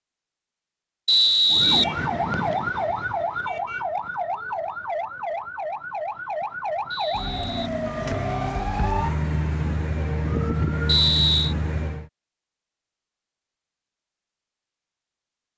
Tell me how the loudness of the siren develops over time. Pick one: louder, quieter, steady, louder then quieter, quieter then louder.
steady.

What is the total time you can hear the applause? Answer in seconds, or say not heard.
not heard.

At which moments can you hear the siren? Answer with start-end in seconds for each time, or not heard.
1.5-12.1.